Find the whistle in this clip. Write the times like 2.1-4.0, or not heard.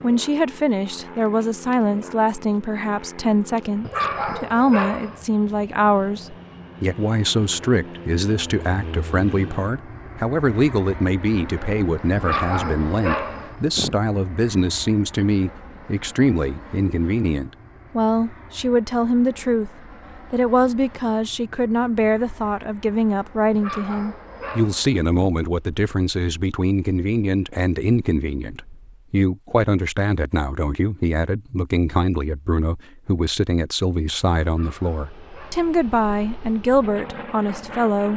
not heard.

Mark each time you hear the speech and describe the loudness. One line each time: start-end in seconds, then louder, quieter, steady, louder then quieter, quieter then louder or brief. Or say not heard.
0.0-38.1 steady.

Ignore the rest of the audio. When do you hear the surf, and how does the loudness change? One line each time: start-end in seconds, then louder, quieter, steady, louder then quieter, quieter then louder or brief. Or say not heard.
not heard.